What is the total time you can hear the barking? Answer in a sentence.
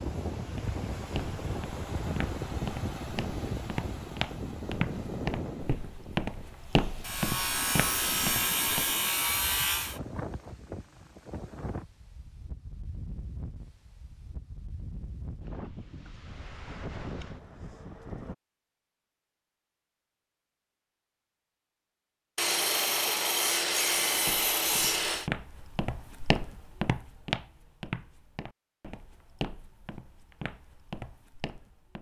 You can't hear the barking here.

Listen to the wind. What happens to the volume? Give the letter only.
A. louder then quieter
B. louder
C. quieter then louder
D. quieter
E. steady
D.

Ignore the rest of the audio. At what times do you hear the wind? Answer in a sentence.
You can hear the wind from 0.0 to 18.4 s.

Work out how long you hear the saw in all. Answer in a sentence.
The saw can be heard for 6 seconds in total.